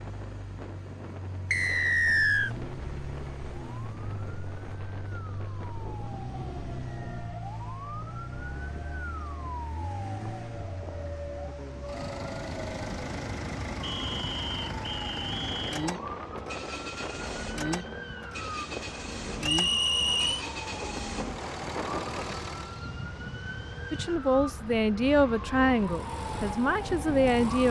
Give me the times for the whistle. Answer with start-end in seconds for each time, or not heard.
1.5-2.5, 13.8-15.9, 19.4-20.4.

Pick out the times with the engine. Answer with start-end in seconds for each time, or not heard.
0.0-22.9, 25.8-27.6.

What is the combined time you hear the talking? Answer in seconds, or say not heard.
4 s.